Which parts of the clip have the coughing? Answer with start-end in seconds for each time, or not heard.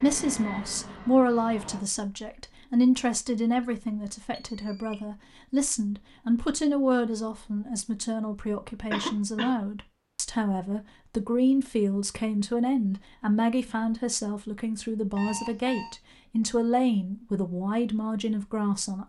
8.9-9.6.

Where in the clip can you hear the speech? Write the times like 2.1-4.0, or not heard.
0.0-19.0.